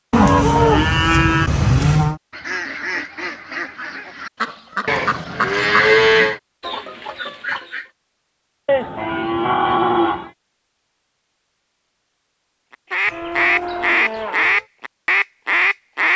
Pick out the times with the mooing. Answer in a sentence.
You can hear the mooing from 0.1 to 2.2 s, from 4.8 to 6.4 s, from 8.7 to 10.3 s and from 13.1 to 14.7 s.